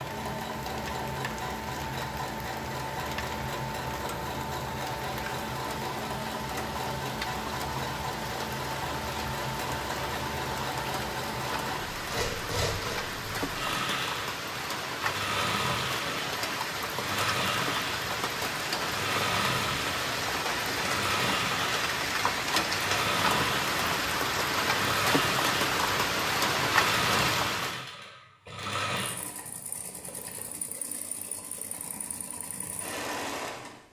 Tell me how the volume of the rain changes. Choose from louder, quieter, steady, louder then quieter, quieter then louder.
louder.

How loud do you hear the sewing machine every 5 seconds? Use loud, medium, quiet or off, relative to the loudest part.
loud, loud, loud, loud, loud, loud, medium.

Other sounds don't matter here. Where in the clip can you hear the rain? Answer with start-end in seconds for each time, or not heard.
0.0-27.9.